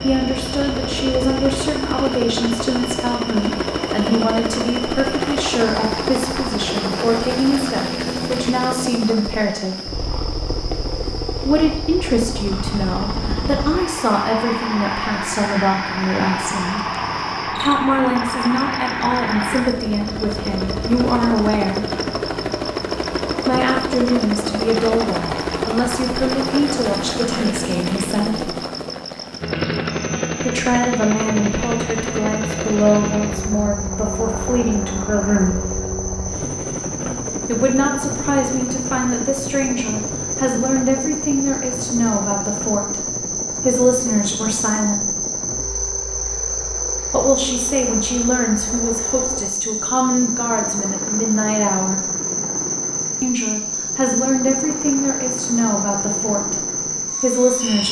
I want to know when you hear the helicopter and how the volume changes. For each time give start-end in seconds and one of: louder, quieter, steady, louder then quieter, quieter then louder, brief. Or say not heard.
0.0-57.8 quieter.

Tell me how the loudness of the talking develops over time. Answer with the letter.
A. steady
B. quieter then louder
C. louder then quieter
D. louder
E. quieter
A.